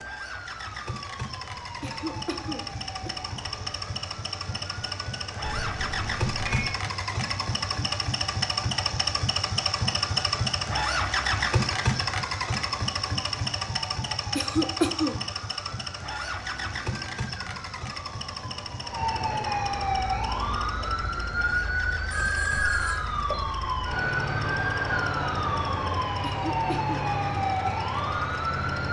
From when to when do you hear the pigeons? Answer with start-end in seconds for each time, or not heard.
not heard.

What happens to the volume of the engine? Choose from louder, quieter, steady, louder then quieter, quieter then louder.
louder then quieter.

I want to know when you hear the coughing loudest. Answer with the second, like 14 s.
15 s.